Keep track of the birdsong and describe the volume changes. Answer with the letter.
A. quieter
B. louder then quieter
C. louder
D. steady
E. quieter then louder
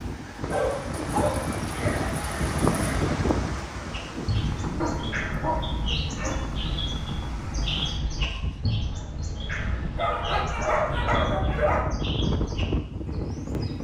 A.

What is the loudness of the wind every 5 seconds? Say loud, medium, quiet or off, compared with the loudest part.
loud, medium, loud.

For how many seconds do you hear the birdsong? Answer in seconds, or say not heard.
10 s.